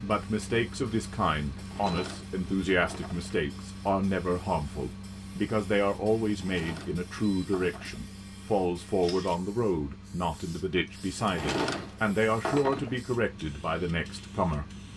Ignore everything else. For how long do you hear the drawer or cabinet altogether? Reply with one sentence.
The drawer or cabinet can be heard for 5 seconds in total.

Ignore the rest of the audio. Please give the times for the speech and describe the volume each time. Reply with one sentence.
The speech can be heard from 0.0 to 14.7 s, at a steady volume.